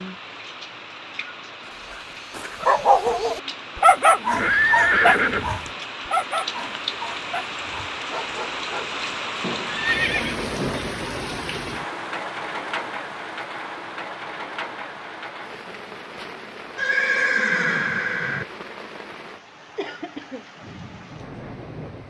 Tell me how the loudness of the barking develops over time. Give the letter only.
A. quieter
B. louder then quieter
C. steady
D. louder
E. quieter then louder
A.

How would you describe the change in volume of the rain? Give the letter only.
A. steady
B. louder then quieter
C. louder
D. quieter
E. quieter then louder
B.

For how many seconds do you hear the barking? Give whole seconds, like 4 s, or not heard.
9 s.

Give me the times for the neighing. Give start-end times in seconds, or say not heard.
4.3-5.7, 9.7-10.5, 16.8-18.4.